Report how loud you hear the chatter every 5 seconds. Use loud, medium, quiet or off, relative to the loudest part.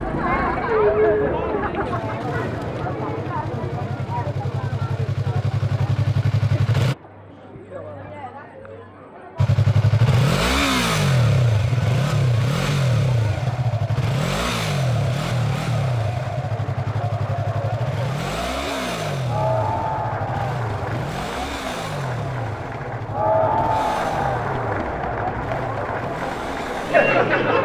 loud, quiet, quiet, medium, loud, loud.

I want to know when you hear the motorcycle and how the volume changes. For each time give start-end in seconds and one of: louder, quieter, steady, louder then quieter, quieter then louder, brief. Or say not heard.
0.0-7.0 louder
9.3-27.6 quieter.